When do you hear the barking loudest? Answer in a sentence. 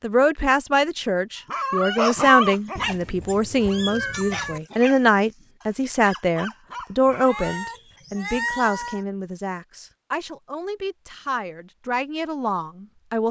The volume of the barking peaks at 2 seconds.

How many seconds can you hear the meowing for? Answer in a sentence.
You can hear the meowing for 4 seconds altogether.